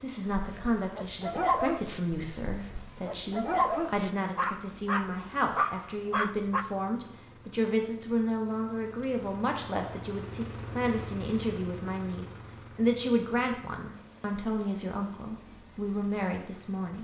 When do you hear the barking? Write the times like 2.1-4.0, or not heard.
0.2-6.7.